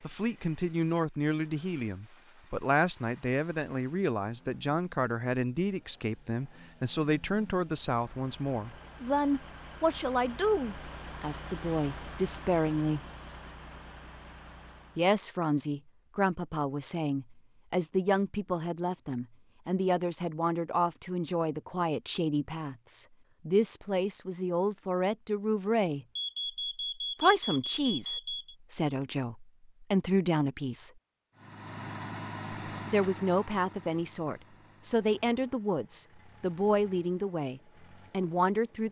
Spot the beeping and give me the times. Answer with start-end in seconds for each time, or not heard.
26.1-28.6.